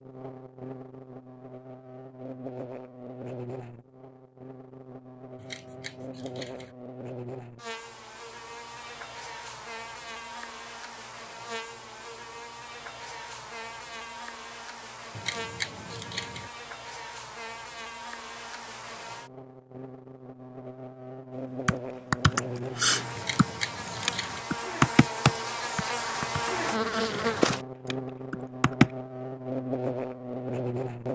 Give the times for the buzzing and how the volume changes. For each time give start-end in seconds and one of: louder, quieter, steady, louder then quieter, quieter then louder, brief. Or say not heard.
0.0-31.1 louder.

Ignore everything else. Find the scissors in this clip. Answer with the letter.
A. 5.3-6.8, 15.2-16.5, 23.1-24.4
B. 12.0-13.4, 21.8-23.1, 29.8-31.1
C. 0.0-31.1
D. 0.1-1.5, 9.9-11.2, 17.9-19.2
A.